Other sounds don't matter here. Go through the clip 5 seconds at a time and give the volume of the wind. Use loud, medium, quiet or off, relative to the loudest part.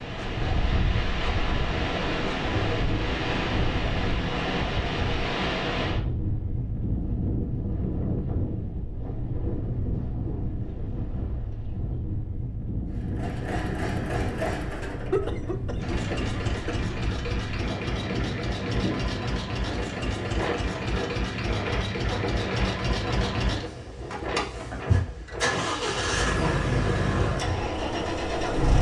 loud, loud, medium, medium, medium, medium.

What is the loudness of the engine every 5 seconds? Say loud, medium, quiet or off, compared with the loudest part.
off, off, medium, medium, loud, loud.